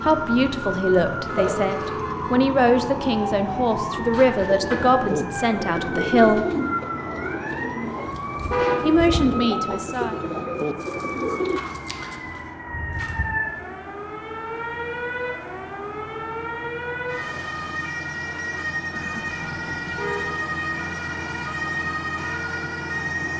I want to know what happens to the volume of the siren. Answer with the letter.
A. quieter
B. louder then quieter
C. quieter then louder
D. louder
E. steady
E.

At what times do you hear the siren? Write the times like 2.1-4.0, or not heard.
0.2-23.3.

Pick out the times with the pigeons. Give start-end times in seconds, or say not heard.
4.5-11.6.